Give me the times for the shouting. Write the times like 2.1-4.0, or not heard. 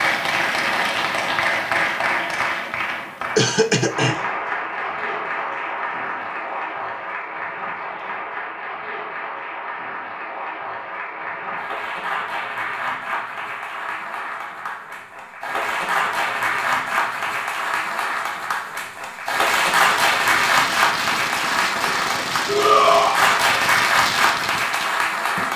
22.4-23.2.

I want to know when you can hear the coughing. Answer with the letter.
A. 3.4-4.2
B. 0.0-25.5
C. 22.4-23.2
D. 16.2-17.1
A.